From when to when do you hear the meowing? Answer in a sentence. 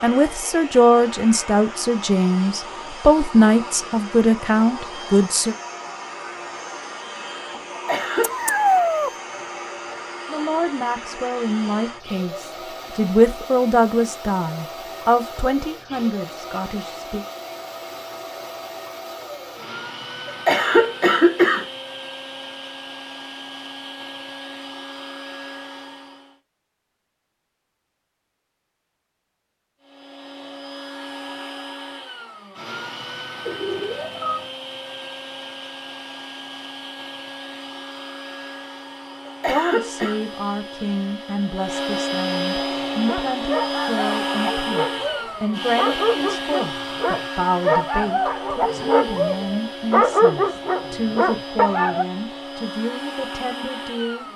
The meowing can be heard from 8.2 to 9.1 s and from 33.4 to 34.5 s.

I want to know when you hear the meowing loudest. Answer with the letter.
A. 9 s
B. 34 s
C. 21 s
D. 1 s
A.